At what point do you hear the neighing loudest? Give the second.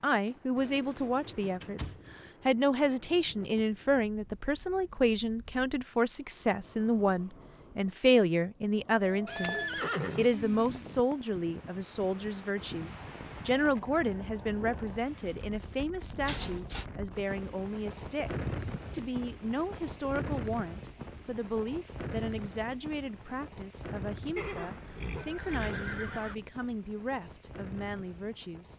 10 s.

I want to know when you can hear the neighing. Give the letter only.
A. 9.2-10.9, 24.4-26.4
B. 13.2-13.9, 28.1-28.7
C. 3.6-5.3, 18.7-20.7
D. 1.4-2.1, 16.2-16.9
A.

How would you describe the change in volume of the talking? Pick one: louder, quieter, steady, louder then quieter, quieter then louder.
quieter.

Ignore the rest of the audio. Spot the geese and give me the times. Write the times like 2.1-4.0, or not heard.
not heard.